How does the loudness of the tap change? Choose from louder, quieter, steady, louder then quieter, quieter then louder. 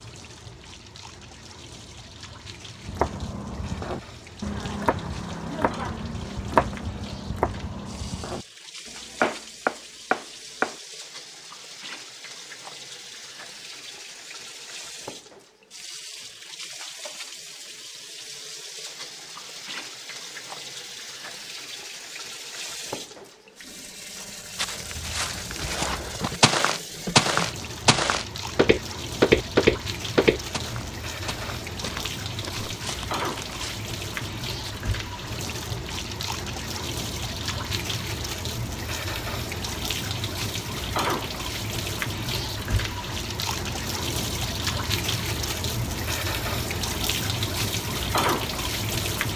louder.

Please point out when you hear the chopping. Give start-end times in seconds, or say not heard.
2.9-10.8.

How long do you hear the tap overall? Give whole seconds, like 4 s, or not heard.
49 s.